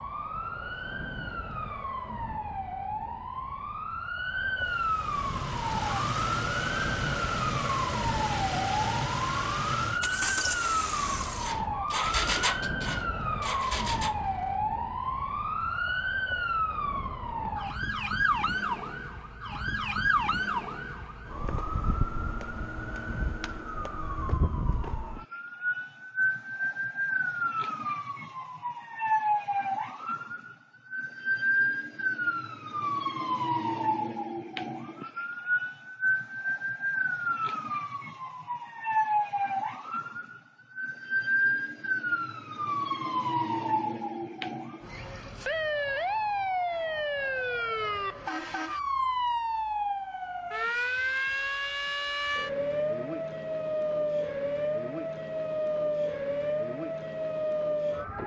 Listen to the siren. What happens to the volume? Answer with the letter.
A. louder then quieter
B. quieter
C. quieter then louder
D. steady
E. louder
D.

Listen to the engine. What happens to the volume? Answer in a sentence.
The volume of the engine stays about the same.